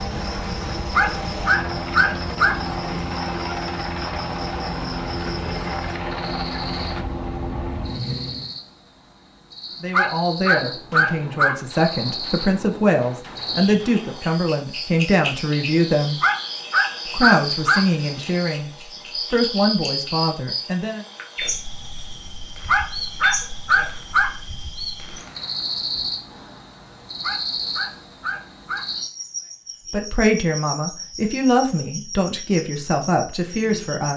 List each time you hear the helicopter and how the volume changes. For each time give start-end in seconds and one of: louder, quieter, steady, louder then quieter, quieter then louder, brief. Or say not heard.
0.0-8.6 steady.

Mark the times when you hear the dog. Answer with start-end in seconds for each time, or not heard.
0.9-2.6, 9.9-11.6, 16.2-17.9, 22.6-24.4, 27.2-28.9.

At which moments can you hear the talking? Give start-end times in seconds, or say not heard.
9.8-16.2, 17.1-21.0, 29.9-34.1.